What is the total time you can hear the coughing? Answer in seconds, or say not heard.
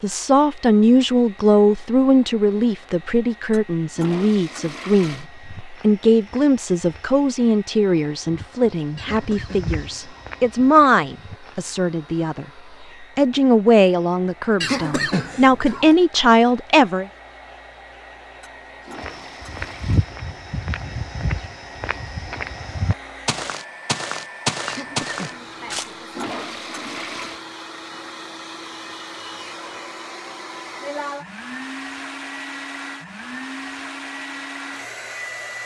4 s.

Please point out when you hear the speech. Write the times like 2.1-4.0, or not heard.
0.0-17.1.